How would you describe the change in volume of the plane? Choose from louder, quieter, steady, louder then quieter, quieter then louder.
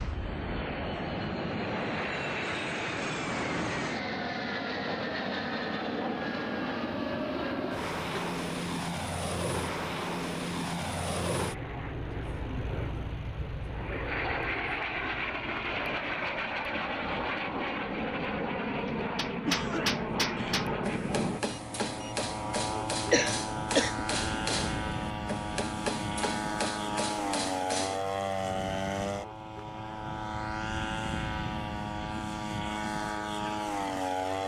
steady.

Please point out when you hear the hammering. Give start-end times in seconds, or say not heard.
18.9-28.0.